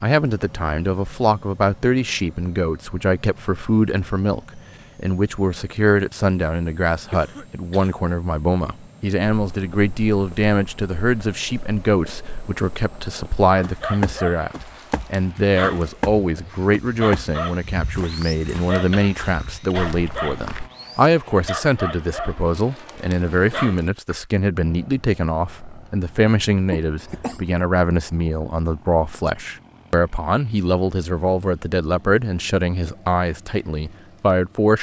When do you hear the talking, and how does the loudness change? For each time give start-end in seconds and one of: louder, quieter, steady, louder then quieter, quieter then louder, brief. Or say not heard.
0.0-34.7 steady.